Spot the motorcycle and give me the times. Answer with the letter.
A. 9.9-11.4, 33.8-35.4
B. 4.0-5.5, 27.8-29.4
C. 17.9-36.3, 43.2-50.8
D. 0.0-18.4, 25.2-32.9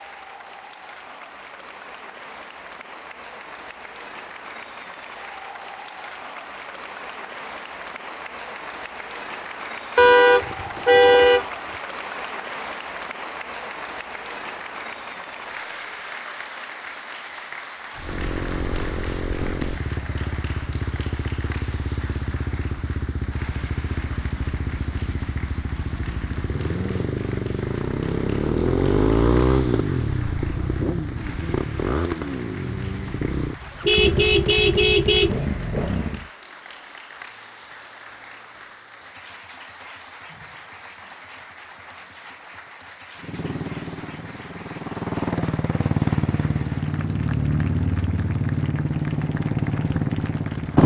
C.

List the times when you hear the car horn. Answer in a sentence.
You can hear the car horn from 9.9 to 11.4 s and from 33.8 to 35.4 s.